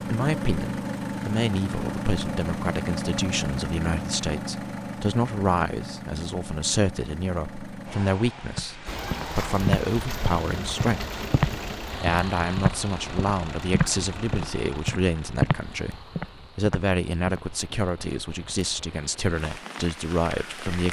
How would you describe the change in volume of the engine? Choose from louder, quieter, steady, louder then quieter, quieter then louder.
quieter.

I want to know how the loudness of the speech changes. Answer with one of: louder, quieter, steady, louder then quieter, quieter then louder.
steady.